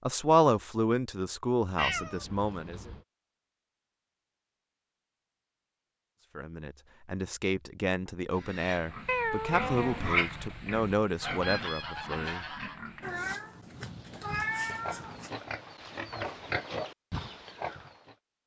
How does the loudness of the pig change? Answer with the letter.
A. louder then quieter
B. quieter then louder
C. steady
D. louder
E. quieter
B.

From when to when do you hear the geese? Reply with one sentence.
You can hear the geese from 11.2 to 12.8 s.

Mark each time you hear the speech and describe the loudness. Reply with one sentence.
The speech can be heard briefly from 0.0 to 2.9 s; and from 6.3 to 12.4 s, at a steady volume.